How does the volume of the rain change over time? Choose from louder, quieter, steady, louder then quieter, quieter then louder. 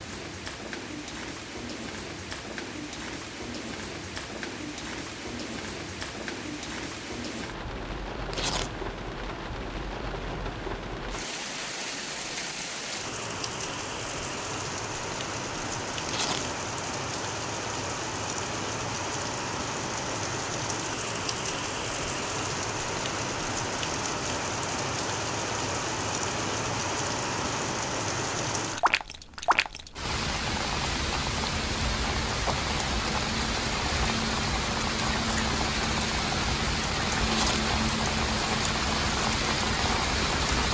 louder.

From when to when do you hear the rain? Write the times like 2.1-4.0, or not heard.
0.0-40.6.